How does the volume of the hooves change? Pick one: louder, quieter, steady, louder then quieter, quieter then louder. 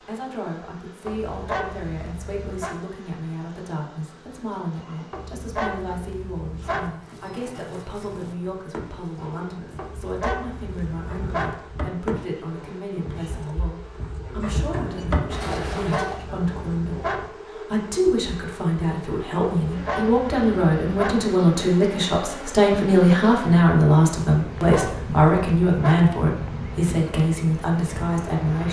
louder.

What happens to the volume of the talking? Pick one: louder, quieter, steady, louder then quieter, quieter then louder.
louder.